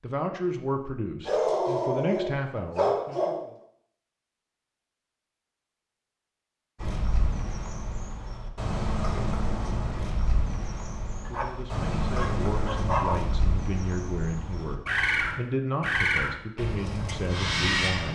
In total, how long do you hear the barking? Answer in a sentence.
You can hear the barking for 4 seconds altogether.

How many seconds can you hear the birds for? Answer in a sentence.
The birds can be heard for 11 seconds in total.